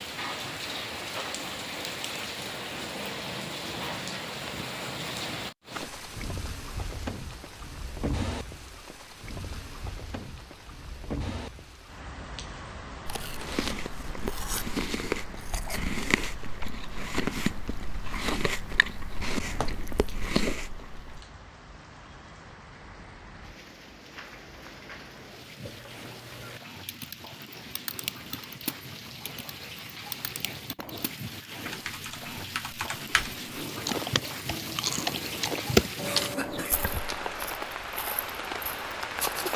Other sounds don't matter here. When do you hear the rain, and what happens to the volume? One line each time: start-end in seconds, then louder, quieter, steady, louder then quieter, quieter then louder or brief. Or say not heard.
0.0-39.5 quieter then louder.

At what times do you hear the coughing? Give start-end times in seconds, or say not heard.
36.0-36.8.